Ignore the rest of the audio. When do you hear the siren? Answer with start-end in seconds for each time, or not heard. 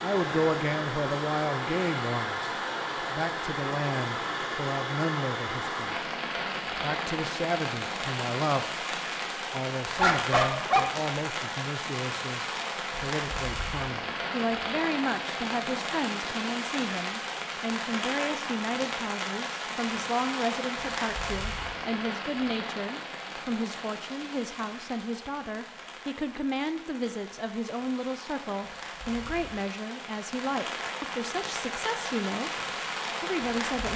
not heard.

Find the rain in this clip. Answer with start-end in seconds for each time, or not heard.
0.0-33.9.